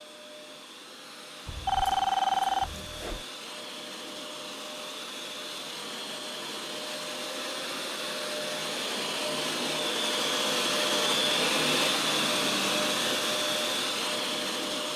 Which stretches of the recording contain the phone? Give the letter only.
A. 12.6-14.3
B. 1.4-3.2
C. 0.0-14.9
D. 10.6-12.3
B.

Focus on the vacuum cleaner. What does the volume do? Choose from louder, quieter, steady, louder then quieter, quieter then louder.
louder.